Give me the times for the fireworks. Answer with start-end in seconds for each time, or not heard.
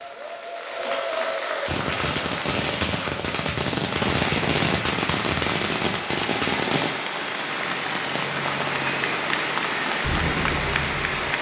1.6-11.3.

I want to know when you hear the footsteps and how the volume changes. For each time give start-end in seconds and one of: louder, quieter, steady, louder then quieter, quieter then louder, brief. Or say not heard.
not heard.